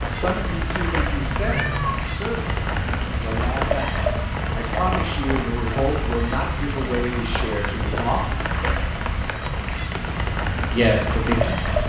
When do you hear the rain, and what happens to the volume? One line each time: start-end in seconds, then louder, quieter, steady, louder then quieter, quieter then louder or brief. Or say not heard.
0.0-11.8 steady.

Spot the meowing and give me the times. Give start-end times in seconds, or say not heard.
1.2-2.0.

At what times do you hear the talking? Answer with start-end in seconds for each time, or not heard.
0.0-8.3, 10.7-11.8.